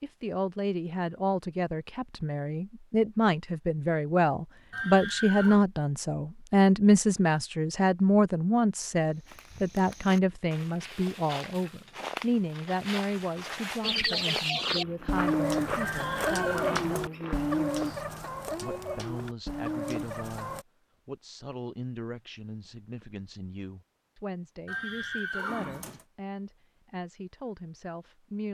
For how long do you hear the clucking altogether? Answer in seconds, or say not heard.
7 s.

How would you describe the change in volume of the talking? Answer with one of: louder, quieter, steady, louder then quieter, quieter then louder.
quieter.